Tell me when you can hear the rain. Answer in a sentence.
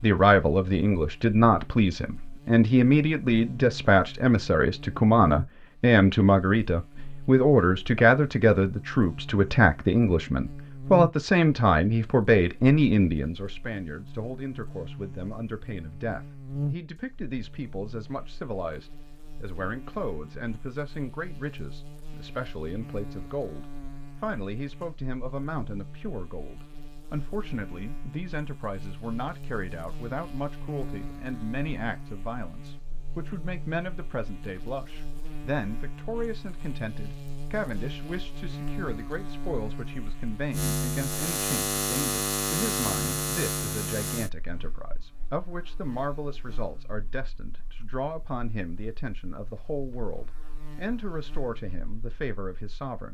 You can't hear the rain here.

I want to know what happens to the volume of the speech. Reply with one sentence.
The loudness of the speech goes down.